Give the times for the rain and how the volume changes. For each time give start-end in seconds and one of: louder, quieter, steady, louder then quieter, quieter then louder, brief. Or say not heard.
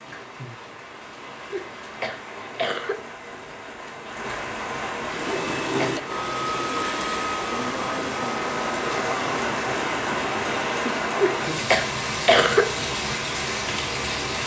0.0-14.4 louder.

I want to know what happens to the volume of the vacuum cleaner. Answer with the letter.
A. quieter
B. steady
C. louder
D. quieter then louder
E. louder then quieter
A.